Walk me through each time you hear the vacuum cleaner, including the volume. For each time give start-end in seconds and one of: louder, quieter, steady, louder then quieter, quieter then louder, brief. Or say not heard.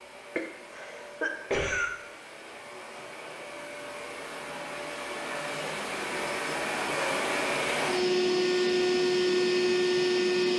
0.0-10.5 louder.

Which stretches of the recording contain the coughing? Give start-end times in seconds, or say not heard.
0.3-1.9.